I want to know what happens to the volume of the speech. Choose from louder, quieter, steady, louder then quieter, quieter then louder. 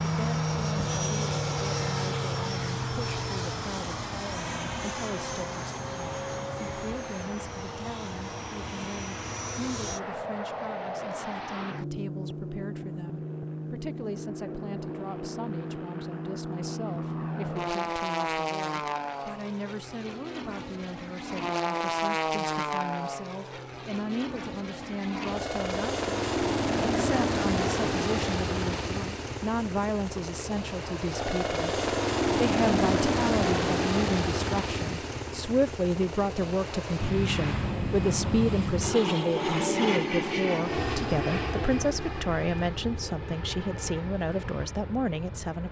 louder.